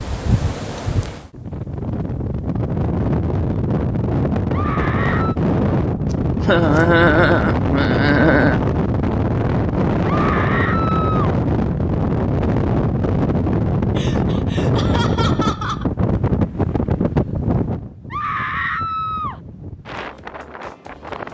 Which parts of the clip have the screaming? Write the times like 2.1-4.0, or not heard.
4.5-5.3, 10.1-11.3, 18.1-19.4.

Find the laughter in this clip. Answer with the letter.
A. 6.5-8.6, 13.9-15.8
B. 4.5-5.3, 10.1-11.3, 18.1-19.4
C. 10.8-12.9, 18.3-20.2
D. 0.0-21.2
A.